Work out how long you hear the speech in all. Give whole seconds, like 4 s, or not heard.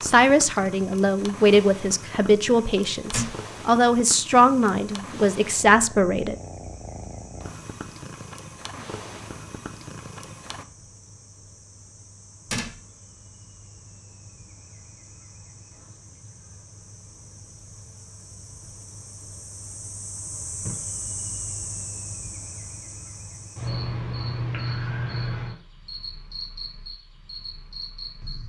6 s.